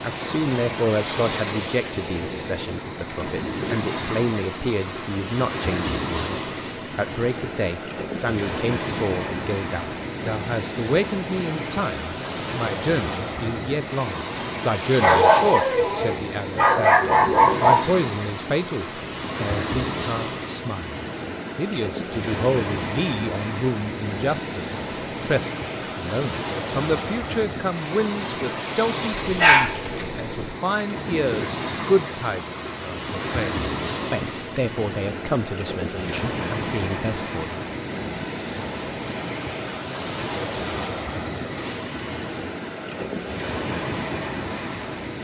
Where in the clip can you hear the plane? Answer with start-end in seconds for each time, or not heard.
not heard.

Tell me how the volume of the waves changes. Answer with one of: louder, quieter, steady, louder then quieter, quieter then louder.
steady.